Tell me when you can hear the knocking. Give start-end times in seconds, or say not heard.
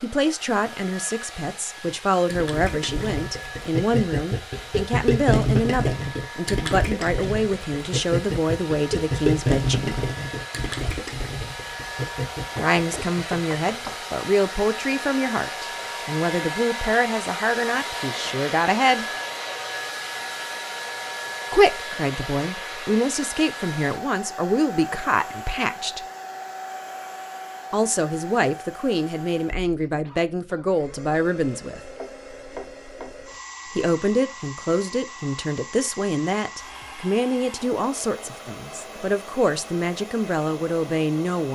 12.5-14.0, 31.9-33.2.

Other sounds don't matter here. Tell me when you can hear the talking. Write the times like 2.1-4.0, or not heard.
0.0-10.1, 12.6-19.1, 21.5-26.1, 27.7-31.8, 33.7-41.5.